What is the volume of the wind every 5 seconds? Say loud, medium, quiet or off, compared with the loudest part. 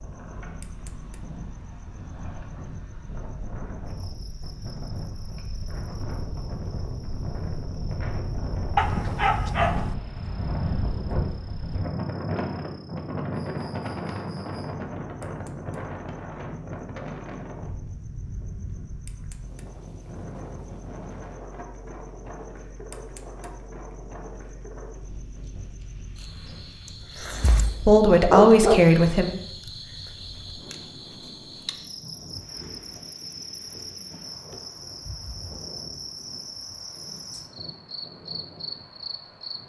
medium, loud, loud, medium, medium, quiet, quiet, quiet.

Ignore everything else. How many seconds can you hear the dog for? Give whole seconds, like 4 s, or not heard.
3 s.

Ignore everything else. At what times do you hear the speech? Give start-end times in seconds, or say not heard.
27.9-29.2.